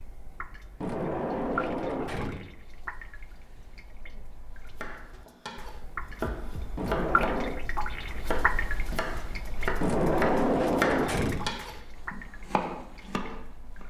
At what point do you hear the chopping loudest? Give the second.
11 s.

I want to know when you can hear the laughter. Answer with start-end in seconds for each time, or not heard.
not heard.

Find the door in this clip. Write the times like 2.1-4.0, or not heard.
0.8-2.5, 6.8-7.7, 9.8-11.5.